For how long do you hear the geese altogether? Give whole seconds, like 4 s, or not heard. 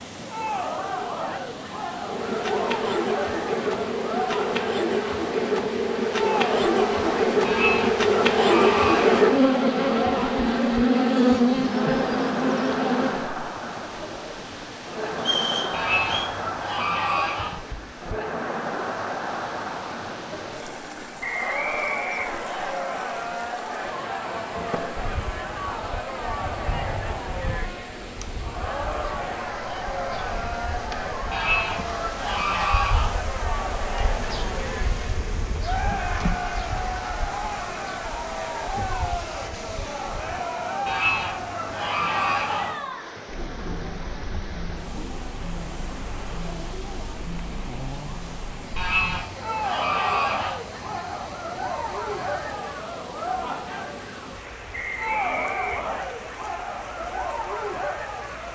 9 s.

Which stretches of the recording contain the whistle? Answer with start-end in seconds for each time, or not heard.
15.2-16.3, 21.2-22.8, 54.7-55.9.